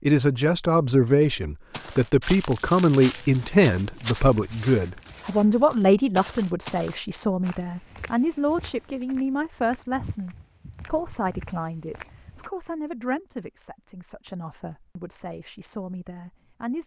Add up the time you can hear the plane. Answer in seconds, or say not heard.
not heard.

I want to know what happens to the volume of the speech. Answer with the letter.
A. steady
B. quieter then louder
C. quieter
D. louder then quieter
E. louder
C.